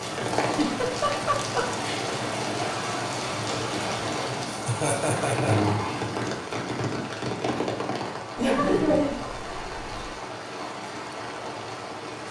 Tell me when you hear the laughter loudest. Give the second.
9 s.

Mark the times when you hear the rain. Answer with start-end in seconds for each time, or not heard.
0.0-12.2.